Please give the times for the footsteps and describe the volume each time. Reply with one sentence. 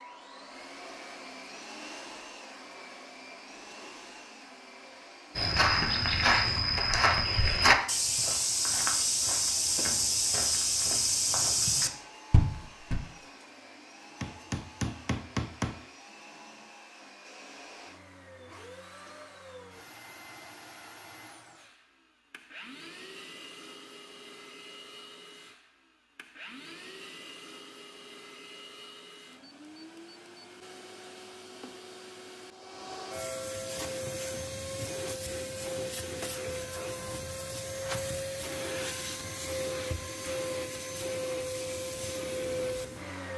The footsteps can be heard from 5.3 to 13.0 s, at a steady volume.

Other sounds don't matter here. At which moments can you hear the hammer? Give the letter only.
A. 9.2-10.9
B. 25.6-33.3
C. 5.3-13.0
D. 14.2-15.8
D.